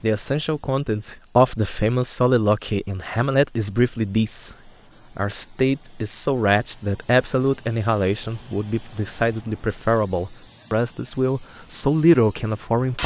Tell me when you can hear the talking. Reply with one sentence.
The talking can be heard from 0.0 to 13.0 s.